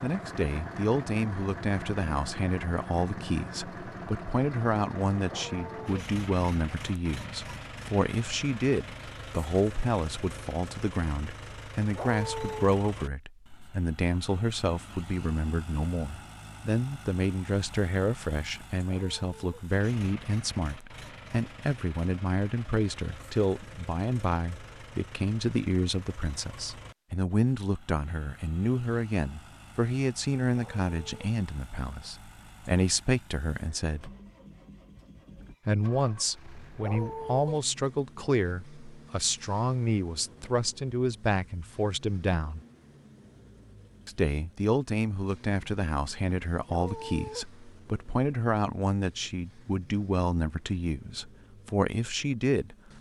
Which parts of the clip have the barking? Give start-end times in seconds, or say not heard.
5.2-6.0, 11.9-12.7, 18.9-19.4, 30.5-31.3, 36.8-37.6, 46.6-47.5.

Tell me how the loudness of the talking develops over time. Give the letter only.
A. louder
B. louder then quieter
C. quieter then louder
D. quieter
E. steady
E.